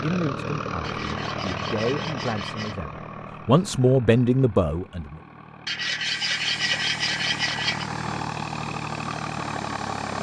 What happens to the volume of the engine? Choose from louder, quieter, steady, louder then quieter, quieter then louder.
quieter then louder.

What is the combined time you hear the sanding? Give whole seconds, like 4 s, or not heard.
4 s.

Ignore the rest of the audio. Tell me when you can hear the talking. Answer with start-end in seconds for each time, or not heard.
0.0-5.2.